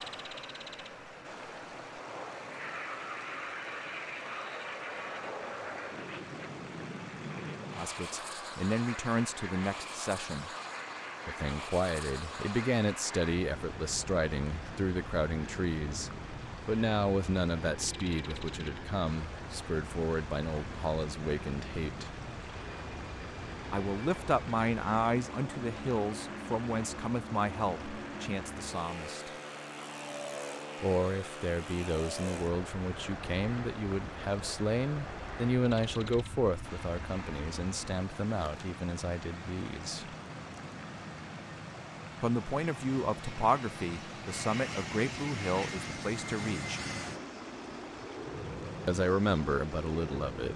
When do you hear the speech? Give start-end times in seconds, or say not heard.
7.8-10.5, 11.2-22.1, 23.7-29.3, 30.8-40.1, 42.2-46.8, 48.9-50.5.